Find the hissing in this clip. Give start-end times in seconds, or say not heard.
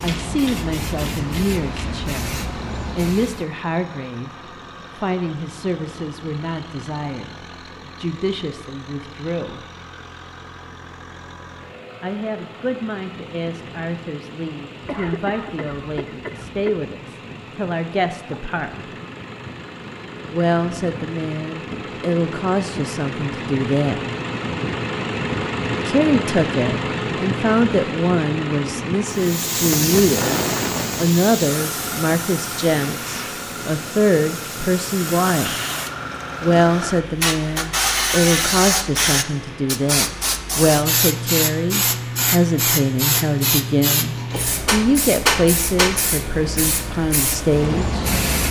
0.0-3.5, 29.1-48.4.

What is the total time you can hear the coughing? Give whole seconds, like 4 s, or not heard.
2 s.